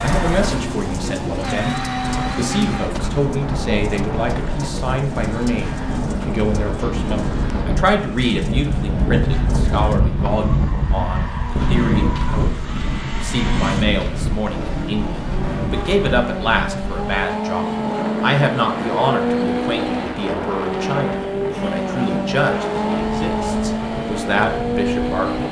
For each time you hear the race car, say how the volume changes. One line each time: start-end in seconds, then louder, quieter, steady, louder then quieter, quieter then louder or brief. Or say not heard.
0.0-25.4 quieter then louder.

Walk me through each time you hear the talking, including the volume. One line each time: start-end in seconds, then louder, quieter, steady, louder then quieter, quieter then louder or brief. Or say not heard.
0.0-1.8 brief
2.4-25.4 steady.